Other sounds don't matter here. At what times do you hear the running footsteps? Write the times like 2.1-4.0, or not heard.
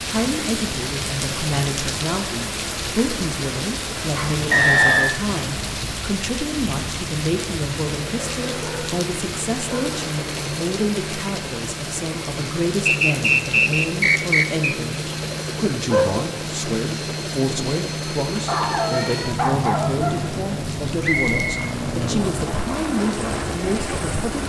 not heard.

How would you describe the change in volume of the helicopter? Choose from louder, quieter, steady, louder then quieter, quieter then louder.
louder.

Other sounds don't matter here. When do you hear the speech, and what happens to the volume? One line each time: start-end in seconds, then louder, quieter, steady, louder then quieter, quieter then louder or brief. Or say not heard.
0.1-24.4 steady.